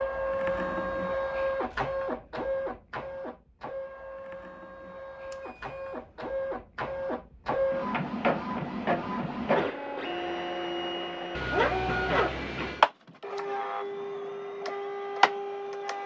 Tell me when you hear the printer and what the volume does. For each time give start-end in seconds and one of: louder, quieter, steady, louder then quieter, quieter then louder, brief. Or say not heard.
0.0-16.0 quieter then louder.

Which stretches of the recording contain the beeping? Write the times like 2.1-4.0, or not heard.
4.8-6.3, 11.3-12.8.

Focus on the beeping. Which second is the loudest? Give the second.
12 s.